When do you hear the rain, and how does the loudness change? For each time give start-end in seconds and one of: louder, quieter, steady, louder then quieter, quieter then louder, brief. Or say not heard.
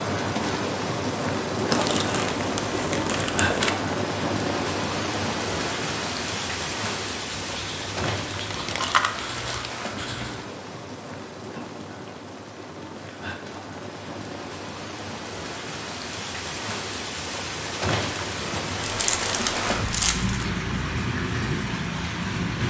0.0-22.6 quieter then louder.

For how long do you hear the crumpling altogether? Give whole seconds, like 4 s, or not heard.
5 s.